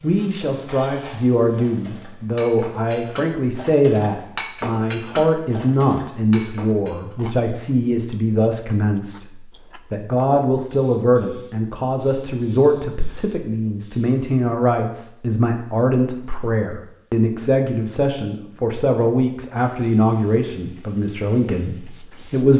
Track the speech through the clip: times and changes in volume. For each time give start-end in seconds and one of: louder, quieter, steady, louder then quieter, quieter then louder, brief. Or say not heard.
0.0-22.5 steady.